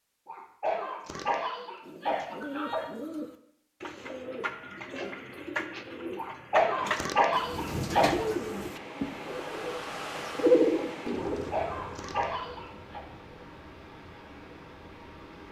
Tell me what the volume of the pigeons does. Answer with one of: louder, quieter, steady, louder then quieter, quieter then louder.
louder.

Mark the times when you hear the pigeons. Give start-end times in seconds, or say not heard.
1.8-11.5.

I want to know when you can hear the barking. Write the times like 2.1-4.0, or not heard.
0.2-2.9, 6.2-8.3, 11.2-13.1.